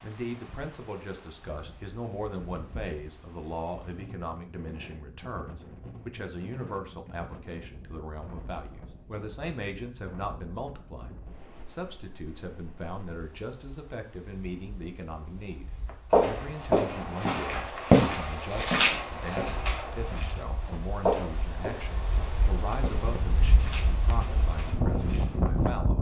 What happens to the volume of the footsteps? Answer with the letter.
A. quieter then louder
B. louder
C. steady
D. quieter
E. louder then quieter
D.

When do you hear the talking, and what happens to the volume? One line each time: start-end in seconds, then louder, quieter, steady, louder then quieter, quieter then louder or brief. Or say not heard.
0.0-25.9 steady.